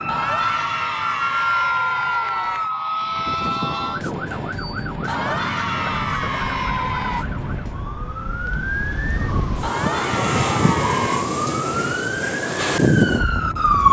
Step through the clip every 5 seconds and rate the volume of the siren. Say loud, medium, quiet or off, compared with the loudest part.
loud, medium, loud.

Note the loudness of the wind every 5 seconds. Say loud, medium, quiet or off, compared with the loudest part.
medium, medium, loud.